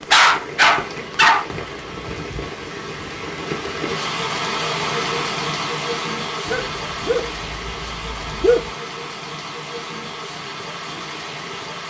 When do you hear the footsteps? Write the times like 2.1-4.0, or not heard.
not heard.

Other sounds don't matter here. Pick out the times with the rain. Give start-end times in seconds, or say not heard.
0.0-11.8.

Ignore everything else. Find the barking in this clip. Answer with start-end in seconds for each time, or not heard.
0.1-1.4, 6.5-8.7.